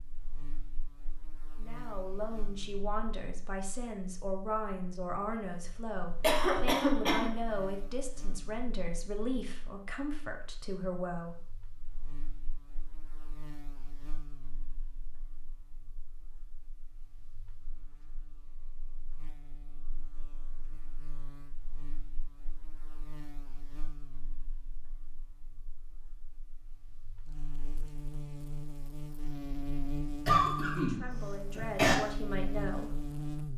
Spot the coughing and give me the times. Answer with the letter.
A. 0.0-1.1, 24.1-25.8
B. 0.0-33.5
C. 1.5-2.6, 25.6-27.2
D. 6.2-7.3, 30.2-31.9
D.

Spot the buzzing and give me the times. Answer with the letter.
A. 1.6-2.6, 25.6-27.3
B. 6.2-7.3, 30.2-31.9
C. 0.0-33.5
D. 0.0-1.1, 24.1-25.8
C.